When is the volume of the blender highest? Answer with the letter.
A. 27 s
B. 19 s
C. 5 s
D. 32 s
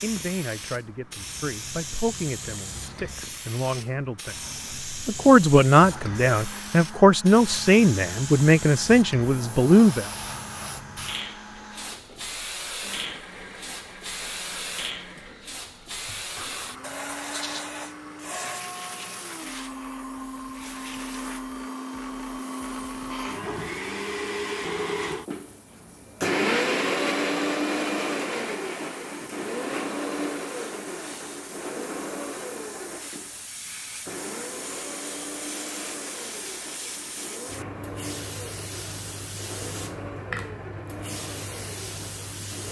A.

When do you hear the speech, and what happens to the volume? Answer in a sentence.
The speech can be heard from 0.0 to 10.1 s, getting louder.